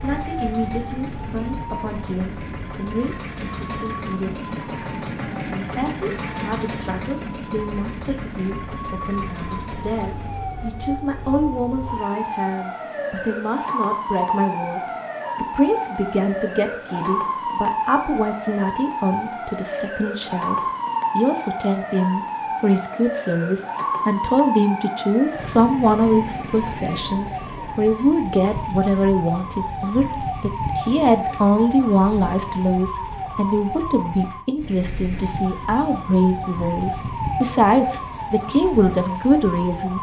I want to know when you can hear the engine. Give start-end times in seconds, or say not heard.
0.0-10.4.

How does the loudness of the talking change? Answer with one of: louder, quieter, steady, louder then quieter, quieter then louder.
louder.